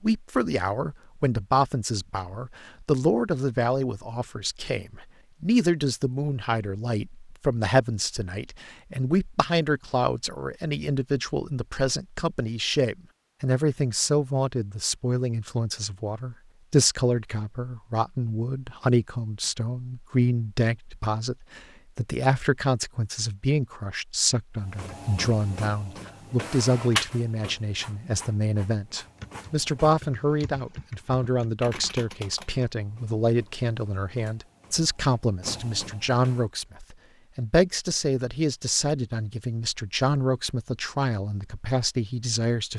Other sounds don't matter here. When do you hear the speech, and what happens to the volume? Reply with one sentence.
You can hear the speech from 0.0 to 42.7 s, at a steady volume.